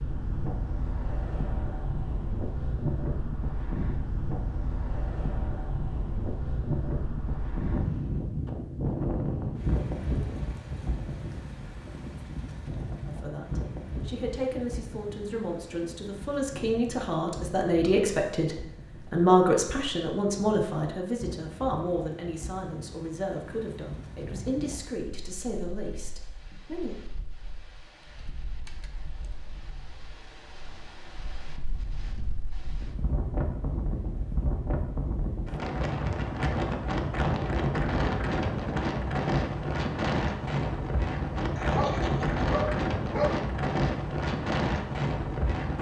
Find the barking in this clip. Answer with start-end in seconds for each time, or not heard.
41.5-43.5.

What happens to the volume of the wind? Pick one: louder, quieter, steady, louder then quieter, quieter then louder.
quieter then louder.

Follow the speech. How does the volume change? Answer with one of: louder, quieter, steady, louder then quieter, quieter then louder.
louder then quieter.